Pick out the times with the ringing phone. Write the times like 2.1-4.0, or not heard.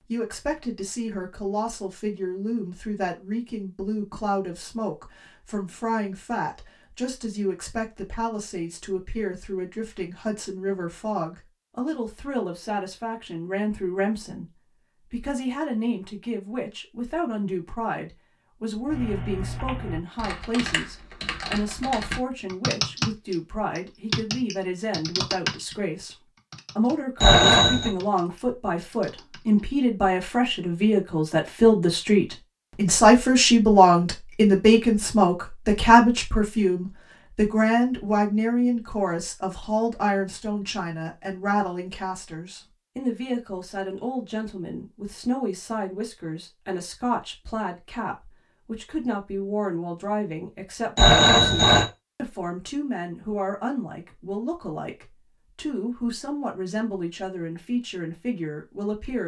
27.2-27.9, 51.0-51.9.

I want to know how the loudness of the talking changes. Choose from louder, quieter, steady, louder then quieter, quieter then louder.
louder then quieter.